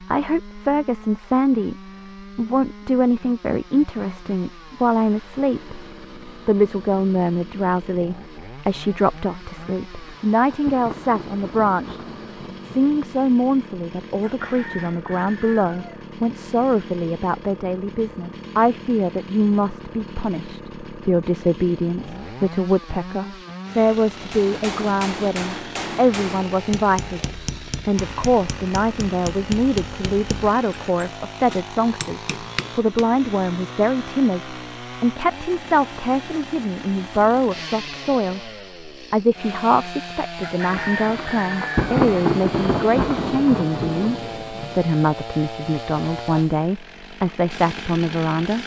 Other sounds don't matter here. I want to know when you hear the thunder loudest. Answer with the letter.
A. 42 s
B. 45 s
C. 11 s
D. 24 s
A.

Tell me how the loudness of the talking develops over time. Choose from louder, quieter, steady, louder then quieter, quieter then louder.
steady.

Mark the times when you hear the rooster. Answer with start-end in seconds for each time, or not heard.
14.2-16.0, 40.4-41.9.